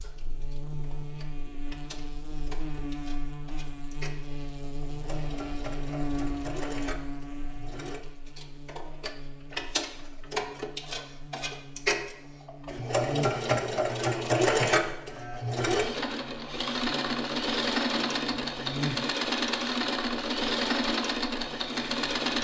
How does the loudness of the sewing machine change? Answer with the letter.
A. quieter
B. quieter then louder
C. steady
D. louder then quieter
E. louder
E.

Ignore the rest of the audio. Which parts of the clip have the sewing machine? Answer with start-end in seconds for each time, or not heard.
0.0-22.3.